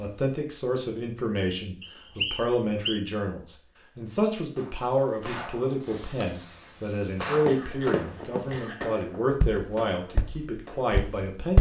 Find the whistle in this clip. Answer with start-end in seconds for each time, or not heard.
1.8-3.0.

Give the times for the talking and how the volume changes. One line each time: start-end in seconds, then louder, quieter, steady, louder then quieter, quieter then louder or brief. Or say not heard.
0.0-11.5 steady.